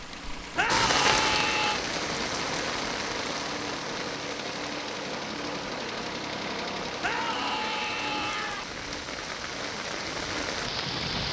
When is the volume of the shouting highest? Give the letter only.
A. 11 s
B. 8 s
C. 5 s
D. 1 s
D.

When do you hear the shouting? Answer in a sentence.
You can hear the shouting from 0.6 to 1.8 s and from 7.0 to 8.7 s.